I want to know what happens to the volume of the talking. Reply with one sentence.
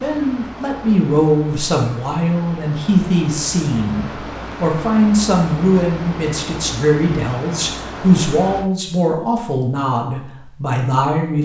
The loudness of the talking stays about the same.